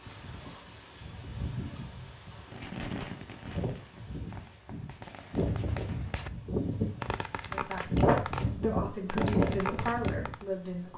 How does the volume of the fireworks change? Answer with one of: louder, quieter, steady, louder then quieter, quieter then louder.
quieter then louder.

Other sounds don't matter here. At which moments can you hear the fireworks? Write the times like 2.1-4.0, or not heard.
2.5-10.4.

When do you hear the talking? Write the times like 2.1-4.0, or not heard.
7.5-10.9.